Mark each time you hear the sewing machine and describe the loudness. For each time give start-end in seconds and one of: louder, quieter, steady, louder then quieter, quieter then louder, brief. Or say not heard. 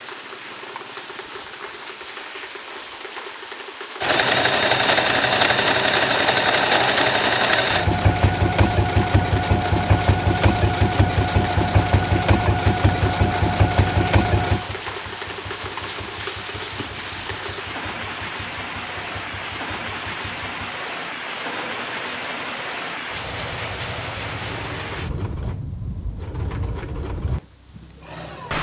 4.0-28.5 quieter.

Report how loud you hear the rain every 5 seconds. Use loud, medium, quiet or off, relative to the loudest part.
medium, loud, loud, loud, loud, loud.